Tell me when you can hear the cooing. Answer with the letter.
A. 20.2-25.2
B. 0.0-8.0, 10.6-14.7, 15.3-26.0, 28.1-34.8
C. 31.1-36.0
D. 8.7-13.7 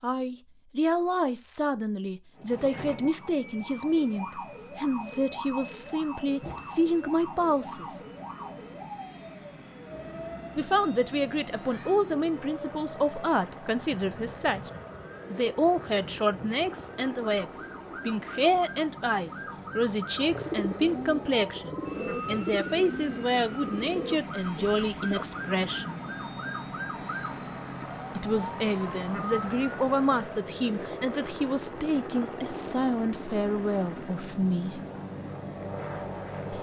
A.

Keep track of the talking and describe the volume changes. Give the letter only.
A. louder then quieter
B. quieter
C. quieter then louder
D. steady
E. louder
D.